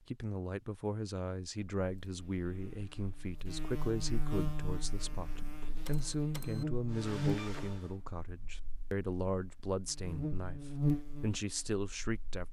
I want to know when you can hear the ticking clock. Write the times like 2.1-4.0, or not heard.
not heard.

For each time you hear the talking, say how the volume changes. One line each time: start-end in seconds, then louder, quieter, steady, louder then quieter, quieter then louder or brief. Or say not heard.
0.1-12.4 steady.